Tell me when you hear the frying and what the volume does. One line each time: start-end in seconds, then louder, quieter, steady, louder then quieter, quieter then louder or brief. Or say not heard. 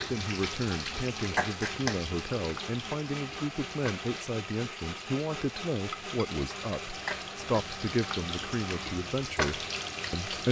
0.0-10.4 quieter then louder.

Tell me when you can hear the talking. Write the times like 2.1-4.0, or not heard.
0.1-10.4.